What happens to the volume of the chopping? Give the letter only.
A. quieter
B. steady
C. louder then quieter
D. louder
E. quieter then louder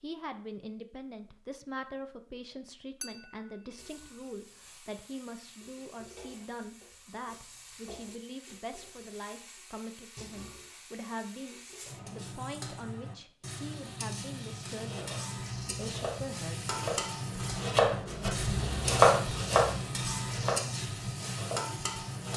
C.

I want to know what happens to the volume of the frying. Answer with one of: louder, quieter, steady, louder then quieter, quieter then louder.
louder.